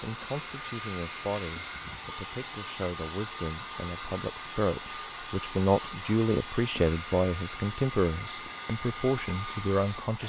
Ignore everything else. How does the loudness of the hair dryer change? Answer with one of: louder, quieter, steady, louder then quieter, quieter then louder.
steady.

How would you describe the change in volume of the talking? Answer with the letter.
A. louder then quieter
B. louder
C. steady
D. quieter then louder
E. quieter
B.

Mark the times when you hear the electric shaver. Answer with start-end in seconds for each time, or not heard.
not heard.